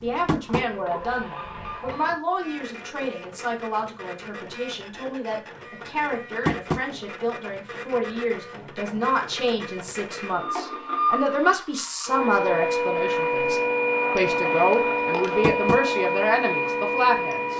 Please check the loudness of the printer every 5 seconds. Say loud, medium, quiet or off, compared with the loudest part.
quiet, quiet, loud, loud.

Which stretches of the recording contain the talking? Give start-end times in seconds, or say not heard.
0.0-17.5.